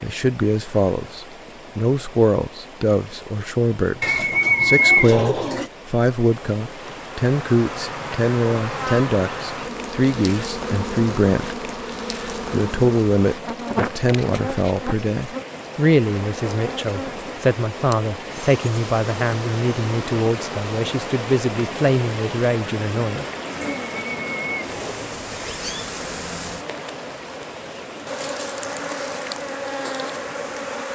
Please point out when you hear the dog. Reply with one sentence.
The dog can't be heard in this clip.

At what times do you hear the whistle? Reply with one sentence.
You can't hear the whistle here.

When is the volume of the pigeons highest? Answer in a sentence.
The volume of the pigeons peaks at 5 seconds.